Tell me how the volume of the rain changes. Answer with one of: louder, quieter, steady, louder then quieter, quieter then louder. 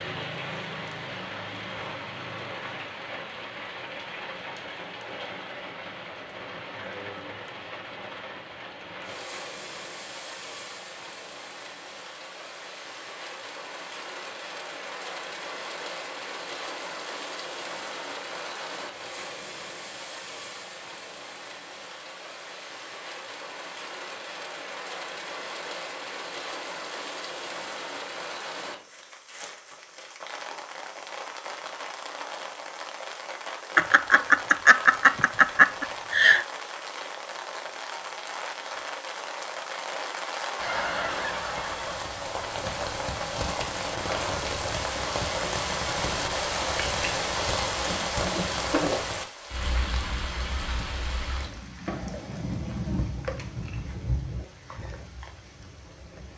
louder.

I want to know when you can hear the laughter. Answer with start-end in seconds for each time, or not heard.
33.8-36.5.